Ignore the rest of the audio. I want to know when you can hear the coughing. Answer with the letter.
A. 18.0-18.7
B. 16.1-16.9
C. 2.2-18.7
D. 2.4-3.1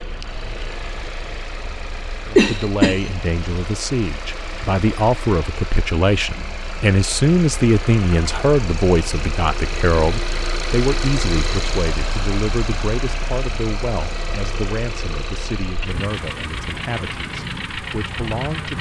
D.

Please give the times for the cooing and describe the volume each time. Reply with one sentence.
You can't hear the cooing here.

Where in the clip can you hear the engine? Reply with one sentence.
The engine can be heard from 0.0 to 18.7 s.